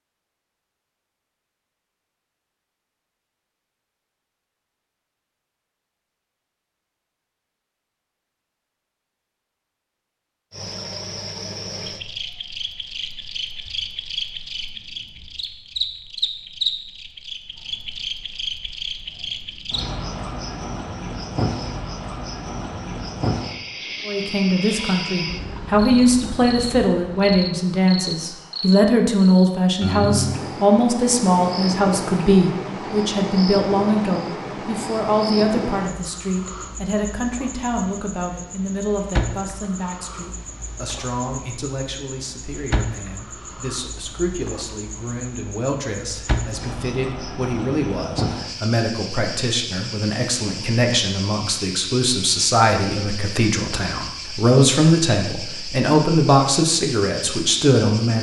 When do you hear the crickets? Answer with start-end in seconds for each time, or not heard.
10.5-58.1.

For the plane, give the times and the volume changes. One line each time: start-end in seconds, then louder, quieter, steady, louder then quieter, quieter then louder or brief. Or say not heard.
not heard.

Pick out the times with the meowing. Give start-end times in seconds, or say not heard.
not heard.